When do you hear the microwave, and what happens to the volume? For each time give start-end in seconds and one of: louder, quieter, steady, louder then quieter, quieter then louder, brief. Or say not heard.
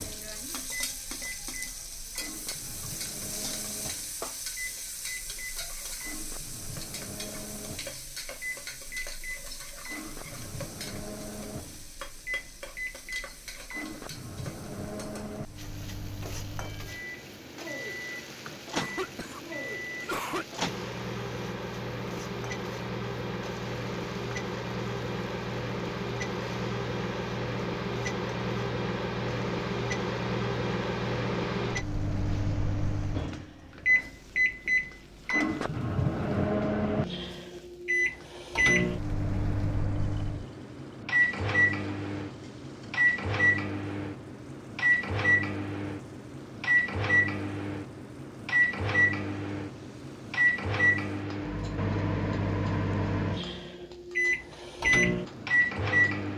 0.0-56.3 louder.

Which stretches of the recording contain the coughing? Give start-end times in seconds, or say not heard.
18.6-20.4.